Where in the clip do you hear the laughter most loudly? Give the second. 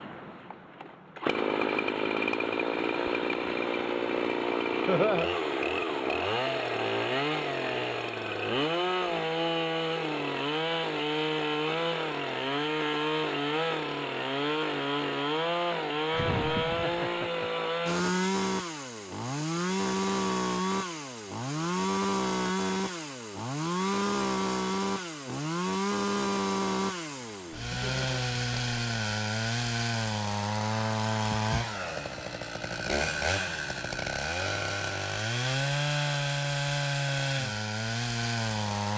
5 s.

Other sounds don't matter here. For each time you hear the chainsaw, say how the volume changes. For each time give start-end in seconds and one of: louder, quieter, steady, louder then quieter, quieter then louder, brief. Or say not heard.
0.0-38.9 steady.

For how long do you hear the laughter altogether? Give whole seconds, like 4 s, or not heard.
2 s.